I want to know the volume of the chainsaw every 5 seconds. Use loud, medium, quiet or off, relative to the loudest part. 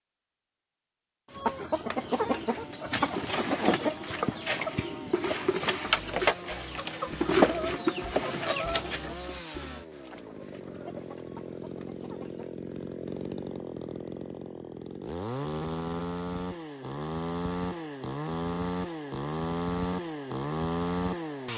quiet, medium, medium, loud, loud.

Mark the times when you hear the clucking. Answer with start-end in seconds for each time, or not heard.
1.3-12.6.